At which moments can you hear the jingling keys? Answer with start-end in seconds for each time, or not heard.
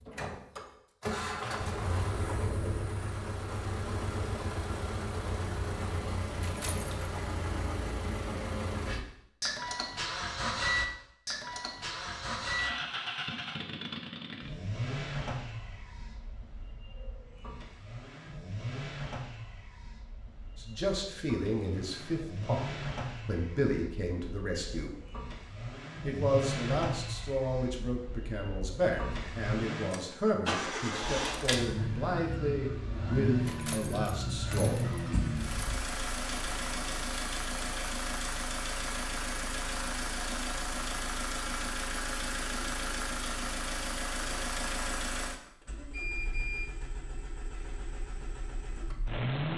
6.4-7.0, 33.5-35.9.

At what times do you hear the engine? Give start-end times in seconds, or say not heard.
0.0-49.5.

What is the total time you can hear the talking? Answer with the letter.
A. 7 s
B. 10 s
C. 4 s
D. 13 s
D.